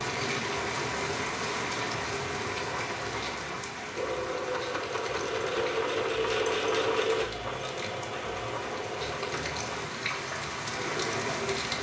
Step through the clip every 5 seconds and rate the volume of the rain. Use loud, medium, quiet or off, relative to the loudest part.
loud, medium, loud.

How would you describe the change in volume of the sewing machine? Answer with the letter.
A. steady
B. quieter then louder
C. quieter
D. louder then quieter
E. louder
D.